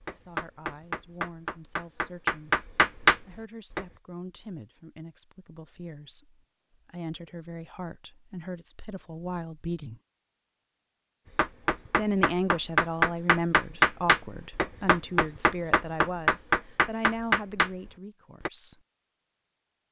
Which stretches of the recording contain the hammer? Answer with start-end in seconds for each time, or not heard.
0.0-3.9, 11.3-18.5.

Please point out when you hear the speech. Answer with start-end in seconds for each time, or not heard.
0.1-10.0, 11.9-18.8.